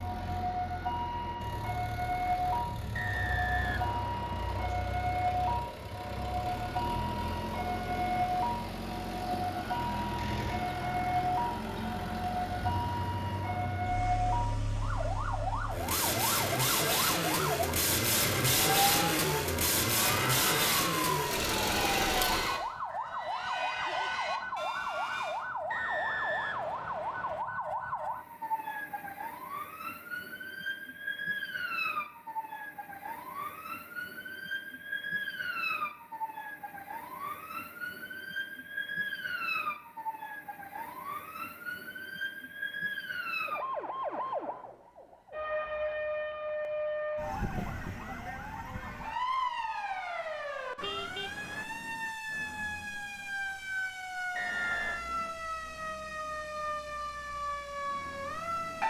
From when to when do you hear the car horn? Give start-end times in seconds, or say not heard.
50.8-51.7.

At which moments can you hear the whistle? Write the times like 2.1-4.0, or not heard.
2.9-4.5, 25.7-27.4, 54.4-55.0.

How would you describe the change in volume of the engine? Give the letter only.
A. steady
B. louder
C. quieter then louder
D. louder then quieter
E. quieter
B.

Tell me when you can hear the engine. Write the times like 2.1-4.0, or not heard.
0.0-22.6.